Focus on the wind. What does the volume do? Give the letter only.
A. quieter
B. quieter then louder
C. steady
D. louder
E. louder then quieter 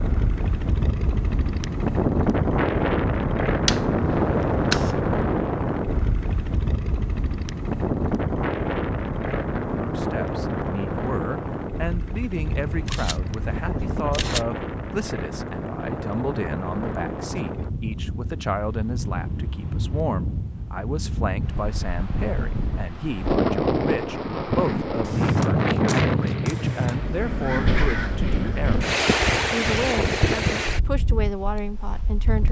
B.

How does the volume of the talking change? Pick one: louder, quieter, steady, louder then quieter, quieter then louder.
steady.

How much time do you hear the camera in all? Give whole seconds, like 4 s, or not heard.
5 s.